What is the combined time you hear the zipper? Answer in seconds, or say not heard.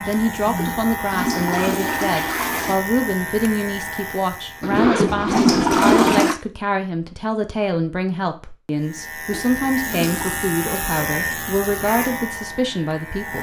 2 s.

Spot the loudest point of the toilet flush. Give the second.
6 s.